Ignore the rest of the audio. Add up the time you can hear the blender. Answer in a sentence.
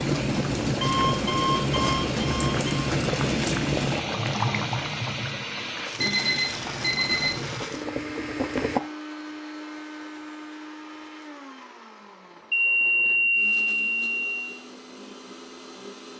You can hear the blender for 16 seconds altogether.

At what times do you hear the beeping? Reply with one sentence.
The beeping can be heard from 0.8 to 2.9 s, from 6.0 to 7.5 s and from 12.5 to 14.6 s.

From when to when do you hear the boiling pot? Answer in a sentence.
You can hear the boiling pot from 0.0 to 8.8 s.